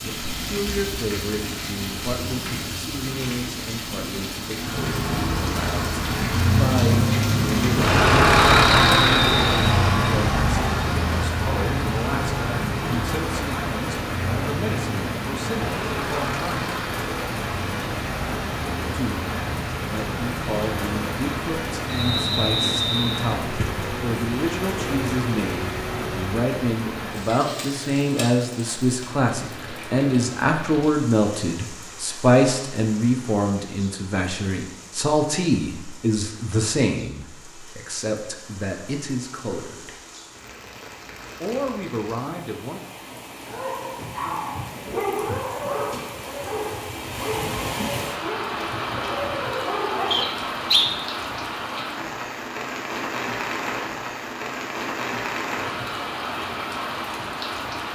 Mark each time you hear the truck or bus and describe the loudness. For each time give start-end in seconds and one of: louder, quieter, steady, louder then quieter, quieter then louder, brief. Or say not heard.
4.5-26.2 quieter.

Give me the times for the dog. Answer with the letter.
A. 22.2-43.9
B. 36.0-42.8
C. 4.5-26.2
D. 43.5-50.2
D.